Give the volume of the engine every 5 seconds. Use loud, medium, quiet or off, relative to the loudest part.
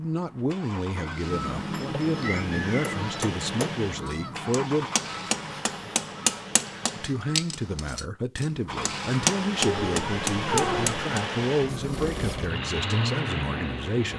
medium, medium, loud.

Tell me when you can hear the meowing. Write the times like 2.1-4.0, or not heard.
0.9-3.0, 9.6-10.9.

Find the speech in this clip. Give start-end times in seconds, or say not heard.
0.0-4.8, 7.0-14.1.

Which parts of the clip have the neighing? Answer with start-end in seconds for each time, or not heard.
not heard.